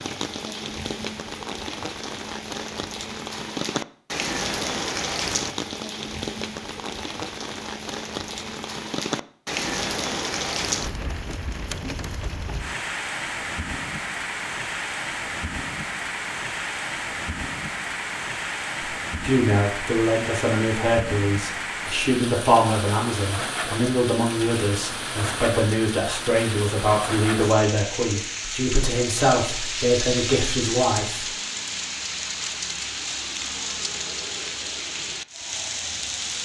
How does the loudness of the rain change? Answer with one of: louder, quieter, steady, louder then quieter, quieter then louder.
steady.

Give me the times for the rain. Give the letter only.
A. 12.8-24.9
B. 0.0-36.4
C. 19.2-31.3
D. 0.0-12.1
B.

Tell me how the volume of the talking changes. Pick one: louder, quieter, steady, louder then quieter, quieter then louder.
steady.